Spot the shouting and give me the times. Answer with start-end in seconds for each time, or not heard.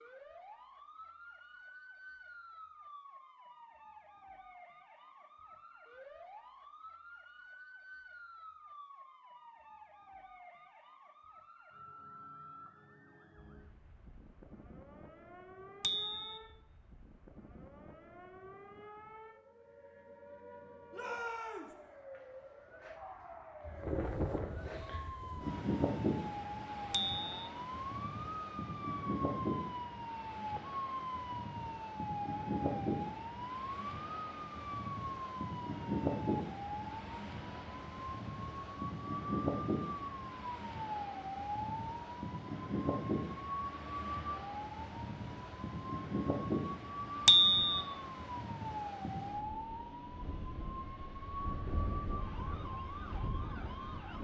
20.9-21.8.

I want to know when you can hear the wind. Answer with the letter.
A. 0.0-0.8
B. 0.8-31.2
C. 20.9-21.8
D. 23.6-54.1
D.